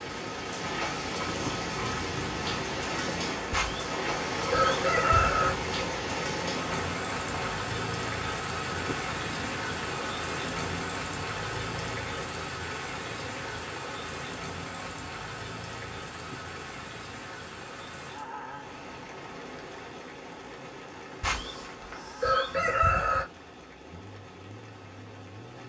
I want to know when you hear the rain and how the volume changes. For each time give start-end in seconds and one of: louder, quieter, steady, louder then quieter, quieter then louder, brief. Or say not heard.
0.0-25.6 quieter.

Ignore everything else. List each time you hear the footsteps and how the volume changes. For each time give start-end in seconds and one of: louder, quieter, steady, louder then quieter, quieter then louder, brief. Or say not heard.
not heard.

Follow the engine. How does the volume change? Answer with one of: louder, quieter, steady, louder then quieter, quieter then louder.
quieter.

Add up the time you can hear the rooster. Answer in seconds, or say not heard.
4 s.